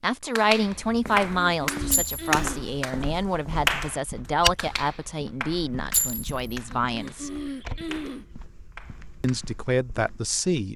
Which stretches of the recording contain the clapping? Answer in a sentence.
The clapping can be heard from 0.3 to 3.0 s, from 3.6 to 7.2 s and from 7.9 to 9.6 s.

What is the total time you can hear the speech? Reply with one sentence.
You can hear the speech for 9 seconds altogether.